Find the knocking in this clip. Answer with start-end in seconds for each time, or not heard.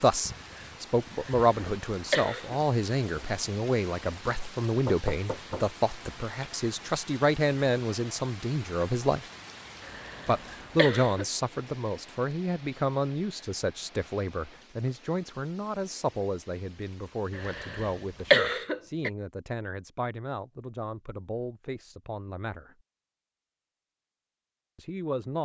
4.8-5.7.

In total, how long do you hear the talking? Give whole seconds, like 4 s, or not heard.
22 s.